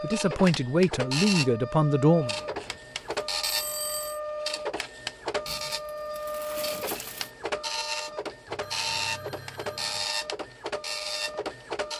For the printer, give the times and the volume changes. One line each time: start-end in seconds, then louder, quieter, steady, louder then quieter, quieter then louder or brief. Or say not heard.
0.0-11.9 steady.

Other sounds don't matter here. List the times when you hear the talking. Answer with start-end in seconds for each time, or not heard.
0.0-2.4.